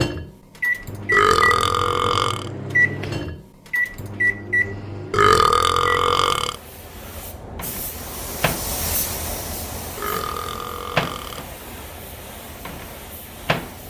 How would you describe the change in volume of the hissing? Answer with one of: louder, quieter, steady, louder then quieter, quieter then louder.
louder then quieter.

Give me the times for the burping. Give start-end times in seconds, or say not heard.
1.1-2.5, 5.1-6.5, 9.9-11.4.